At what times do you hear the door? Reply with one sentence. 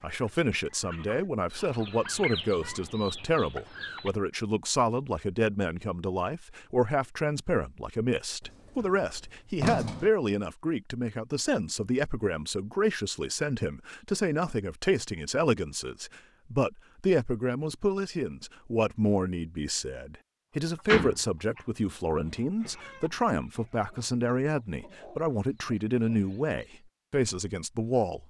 You can hear the door from 8.4 to 10.1 s and from 20.9 to 21.6 s.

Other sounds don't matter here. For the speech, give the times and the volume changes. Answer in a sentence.
The speech can be heard from 0.0 to 28.2 s, at a steady volume.